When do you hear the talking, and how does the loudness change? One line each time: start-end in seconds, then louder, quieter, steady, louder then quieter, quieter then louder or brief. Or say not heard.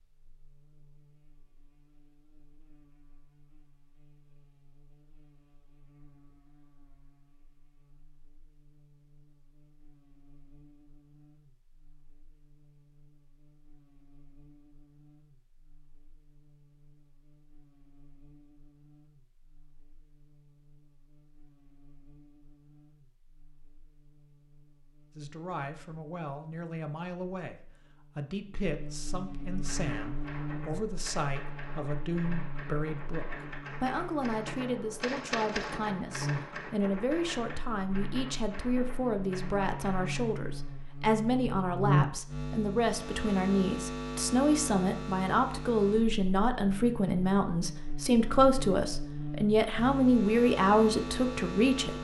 25.1-51.9 louder.